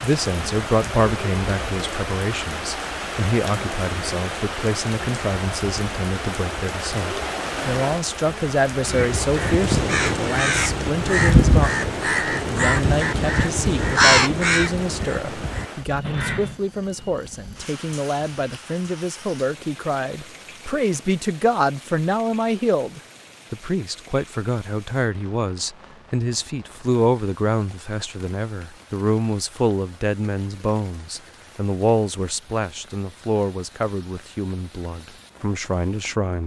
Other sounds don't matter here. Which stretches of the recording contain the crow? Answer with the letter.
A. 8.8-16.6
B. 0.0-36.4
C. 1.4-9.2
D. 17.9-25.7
A.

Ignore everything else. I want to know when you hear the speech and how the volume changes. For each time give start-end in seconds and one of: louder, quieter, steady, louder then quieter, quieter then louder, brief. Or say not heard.
0.0-36.4 steady.